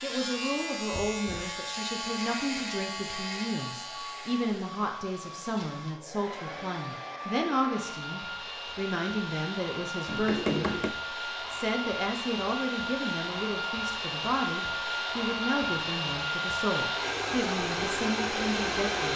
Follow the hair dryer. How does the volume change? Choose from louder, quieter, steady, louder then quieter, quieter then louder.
louder.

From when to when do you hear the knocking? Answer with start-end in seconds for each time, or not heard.
0.9-1.6, 10.1-10.9.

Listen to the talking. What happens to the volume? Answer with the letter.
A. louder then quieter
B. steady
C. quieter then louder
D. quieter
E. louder
B.